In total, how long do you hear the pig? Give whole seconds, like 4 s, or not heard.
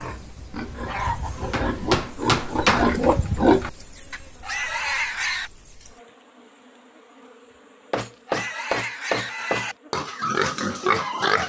9 s.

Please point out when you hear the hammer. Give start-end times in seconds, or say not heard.
1.5-3.0, 7.9-9.7.